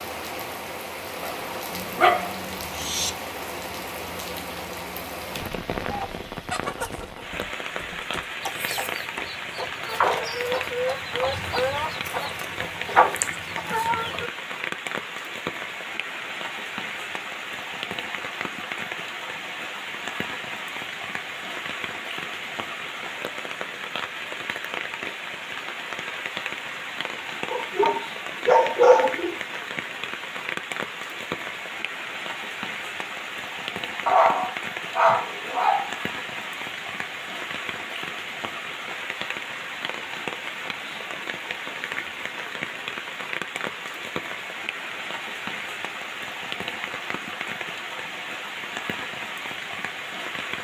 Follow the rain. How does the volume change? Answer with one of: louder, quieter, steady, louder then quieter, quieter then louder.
steady.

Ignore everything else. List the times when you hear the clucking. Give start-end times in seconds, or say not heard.
5.9-14.3.